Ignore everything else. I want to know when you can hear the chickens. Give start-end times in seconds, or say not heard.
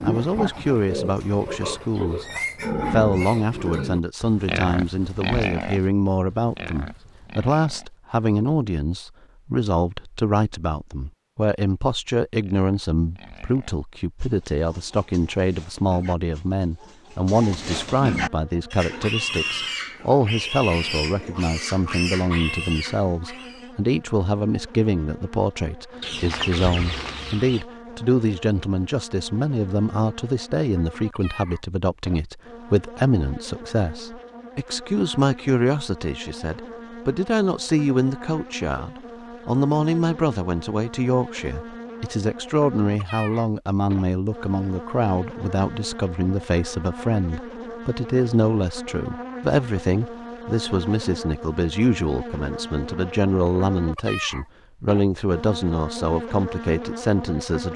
26.0-27.6.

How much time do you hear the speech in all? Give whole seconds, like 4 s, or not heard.
57 s.